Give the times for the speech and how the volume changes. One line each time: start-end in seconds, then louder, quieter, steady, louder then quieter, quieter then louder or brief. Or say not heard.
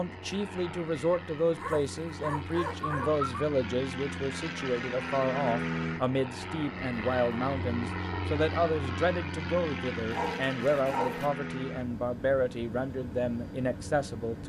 0.0-14.4 steady.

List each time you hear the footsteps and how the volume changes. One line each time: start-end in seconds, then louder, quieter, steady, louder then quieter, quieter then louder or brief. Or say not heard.
not heard.